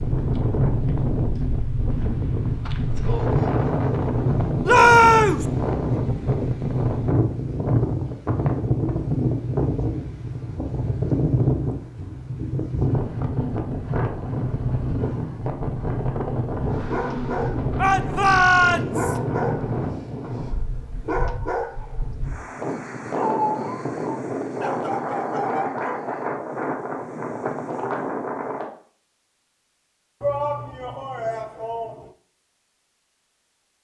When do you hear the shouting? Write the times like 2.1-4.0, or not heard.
4.7-5.5, 17.8-19.1, 30.2-32.1.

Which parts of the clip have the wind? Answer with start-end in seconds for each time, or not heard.
0.0-28.6.